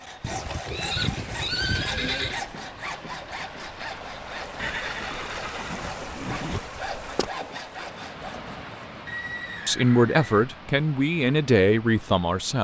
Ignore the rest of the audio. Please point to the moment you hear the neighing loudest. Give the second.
2 s.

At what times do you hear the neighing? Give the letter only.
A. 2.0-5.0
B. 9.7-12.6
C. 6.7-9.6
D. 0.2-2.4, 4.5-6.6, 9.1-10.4
D.